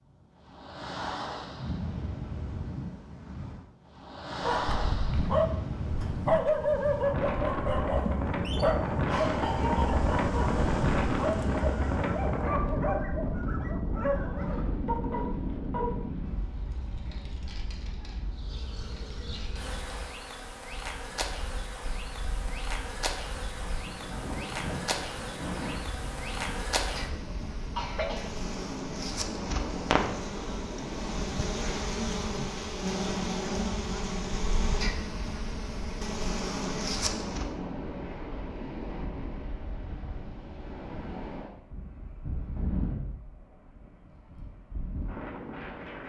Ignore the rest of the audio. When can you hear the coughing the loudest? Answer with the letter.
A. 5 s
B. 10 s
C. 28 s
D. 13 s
C.